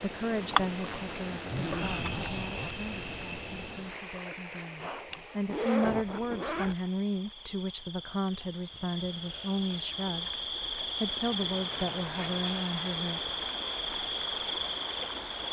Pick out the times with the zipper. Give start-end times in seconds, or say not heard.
0.8-2.7, 5.5-6.8, 11.2-12.6.